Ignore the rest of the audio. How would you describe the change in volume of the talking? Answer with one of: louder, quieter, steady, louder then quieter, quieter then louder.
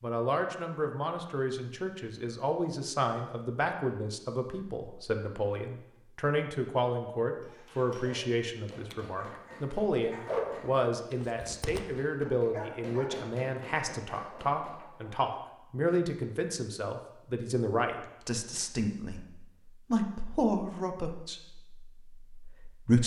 steady.